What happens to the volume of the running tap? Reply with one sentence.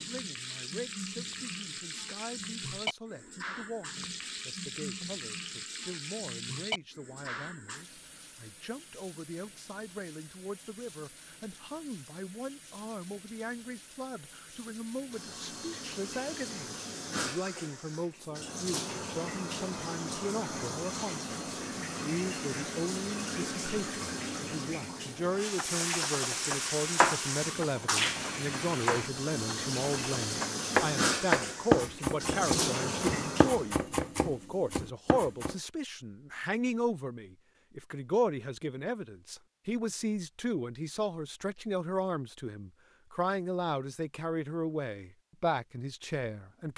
The volume of the running tap goes down, then up.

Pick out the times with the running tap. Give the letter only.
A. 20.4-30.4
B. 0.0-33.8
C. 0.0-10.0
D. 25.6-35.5
B.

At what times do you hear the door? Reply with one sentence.
The door can't be heard in this clip.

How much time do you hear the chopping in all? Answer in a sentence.
You can hear the chopping for 10 seconds altogether.